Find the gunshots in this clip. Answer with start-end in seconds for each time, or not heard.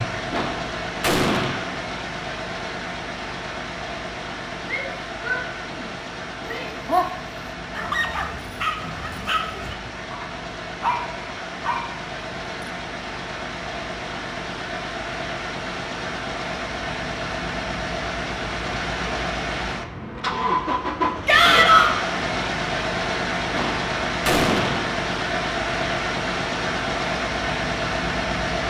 0.3-1.8, 23.5-24.9.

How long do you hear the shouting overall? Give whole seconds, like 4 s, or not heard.
3 s.